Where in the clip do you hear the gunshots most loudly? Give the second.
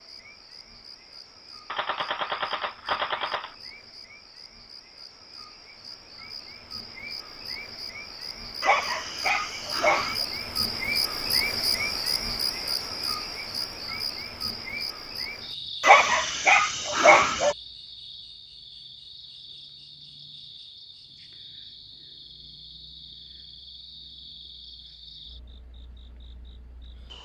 3 s.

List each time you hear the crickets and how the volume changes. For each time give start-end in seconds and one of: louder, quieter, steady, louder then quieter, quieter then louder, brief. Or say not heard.
0.0-27.1 louder then quieter.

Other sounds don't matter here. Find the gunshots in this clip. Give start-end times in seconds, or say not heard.
1.7-3.5.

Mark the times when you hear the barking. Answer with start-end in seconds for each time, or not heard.
8.6-10.2, 15.8-17.6.